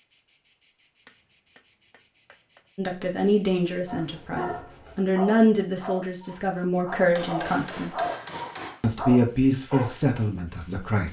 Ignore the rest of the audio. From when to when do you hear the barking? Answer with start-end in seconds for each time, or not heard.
3.9-9.9.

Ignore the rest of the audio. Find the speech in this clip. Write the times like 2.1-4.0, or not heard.
2.8-8.1, 8.8-11.0.